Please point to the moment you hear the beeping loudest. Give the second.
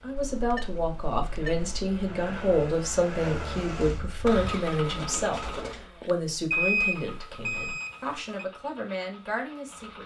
7 s.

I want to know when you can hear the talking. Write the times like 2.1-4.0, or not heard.
0.0-10.0.